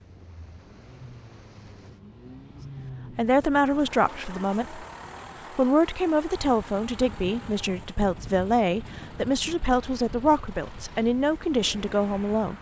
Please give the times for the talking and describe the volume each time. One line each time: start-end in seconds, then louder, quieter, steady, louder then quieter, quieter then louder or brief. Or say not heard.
3.1-4.8 brief
5.5-12.5 steady.